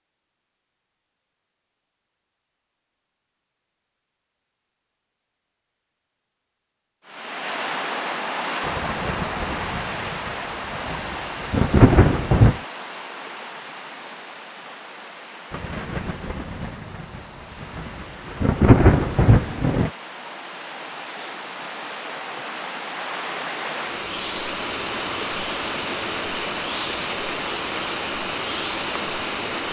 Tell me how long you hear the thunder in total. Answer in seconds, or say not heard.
8 s.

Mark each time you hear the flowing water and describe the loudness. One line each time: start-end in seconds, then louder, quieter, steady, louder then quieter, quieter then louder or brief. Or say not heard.
7.0-29.6 quieter then louder.